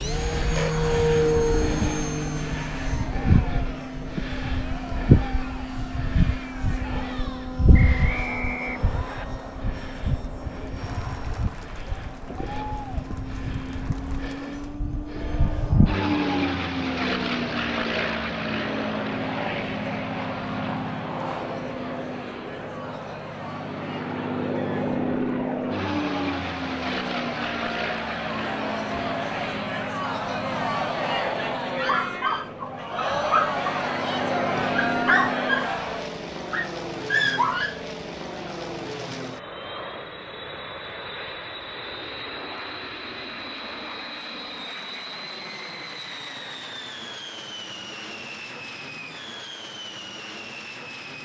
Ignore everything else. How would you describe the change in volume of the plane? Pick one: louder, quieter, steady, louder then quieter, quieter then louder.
quieter.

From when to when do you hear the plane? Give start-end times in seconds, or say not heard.
0.0-51.2.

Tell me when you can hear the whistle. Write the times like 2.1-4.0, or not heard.
7.7-9.2.